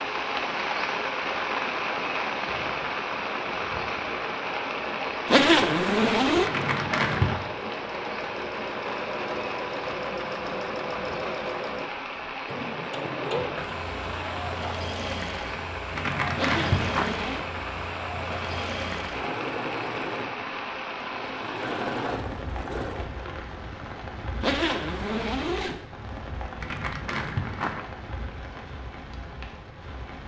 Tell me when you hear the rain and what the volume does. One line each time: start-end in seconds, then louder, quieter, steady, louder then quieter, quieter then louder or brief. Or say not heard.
0.0-30.2 quieter.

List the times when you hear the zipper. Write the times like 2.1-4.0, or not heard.
5.2-6.5, 16.4-17.4, 24.4-25.8.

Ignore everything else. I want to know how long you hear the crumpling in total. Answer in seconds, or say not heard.
3 s.